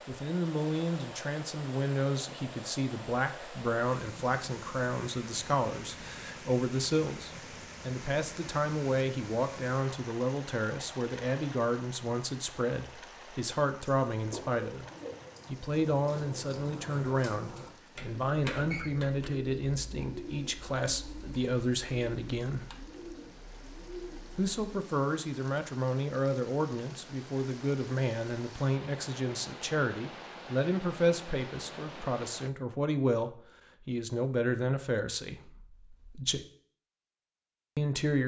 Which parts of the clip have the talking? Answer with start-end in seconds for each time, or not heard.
0.1-14.8, 15.4-22.7, 24.4-36.5, 37.8-38.2.